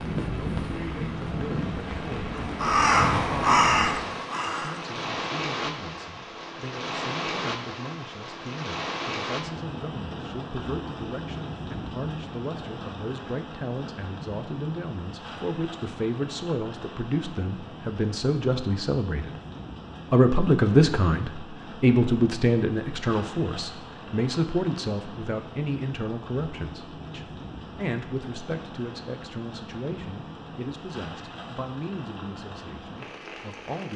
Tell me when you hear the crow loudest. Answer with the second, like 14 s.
4 s.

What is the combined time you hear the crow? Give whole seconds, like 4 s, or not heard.
5 s.